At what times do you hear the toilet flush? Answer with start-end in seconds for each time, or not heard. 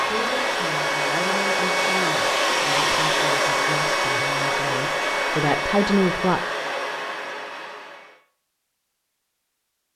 not heard.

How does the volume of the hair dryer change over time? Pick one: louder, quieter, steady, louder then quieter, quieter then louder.
quieter.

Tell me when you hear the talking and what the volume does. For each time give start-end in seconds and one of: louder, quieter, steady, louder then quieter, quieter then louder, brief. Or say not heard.
0.1-6.4 louder.